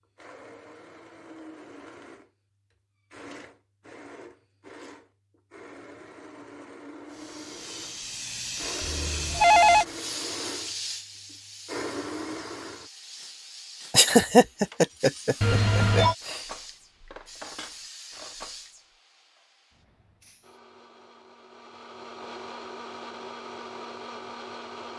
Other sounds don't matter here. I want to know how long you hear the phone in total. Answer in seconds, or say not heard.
2 s.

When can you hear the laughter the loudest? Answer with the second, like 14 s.
14 s.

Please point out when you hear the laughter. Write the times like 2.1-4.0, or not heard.
13.9-16.4.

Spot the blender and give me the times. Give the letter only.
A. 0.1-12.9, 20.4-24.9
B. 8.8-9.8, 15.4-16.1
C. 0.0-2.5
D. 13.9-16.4
A.